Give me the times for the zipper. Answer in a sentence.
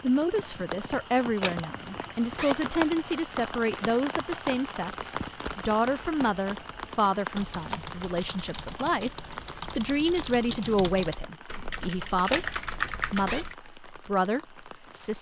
You can hear the zipper from 1.4 to 2.6 s and from 12.3 to 13.5 s.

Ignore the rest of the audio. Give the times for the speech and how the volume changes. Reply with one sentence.
You can hear the speech from 0.0 to 15.1 s, at a steady volume.